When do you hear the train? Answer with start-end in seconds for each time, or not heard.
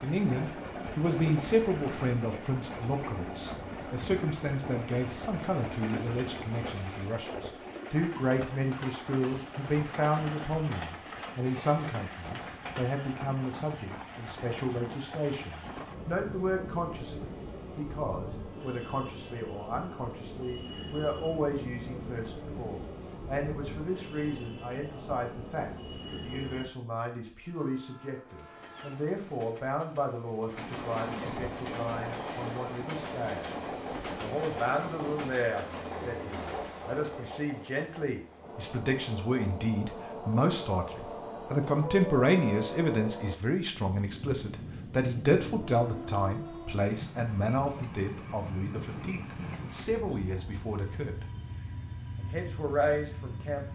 0.0-53.7.